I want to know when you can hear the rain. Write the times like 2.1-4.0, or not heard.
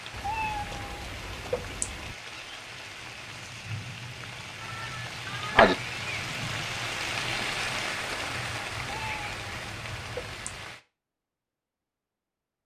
0.0-10.8.